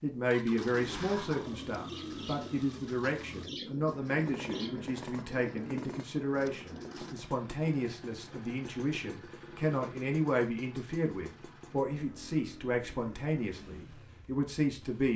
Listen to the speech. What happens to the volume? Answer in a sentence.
The volume of the speech stays about the same.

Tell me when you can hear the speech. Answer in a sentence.
You can hear the speech from 0.0 to 15.1 s.